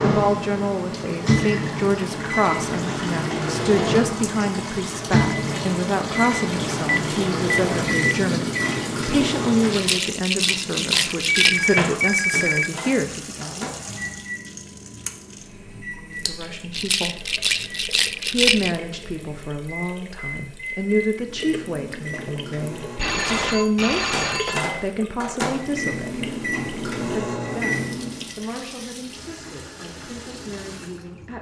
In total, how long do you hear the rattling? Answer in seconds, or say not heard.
4 s.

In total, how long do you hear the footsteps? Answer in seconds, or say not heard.
not heard.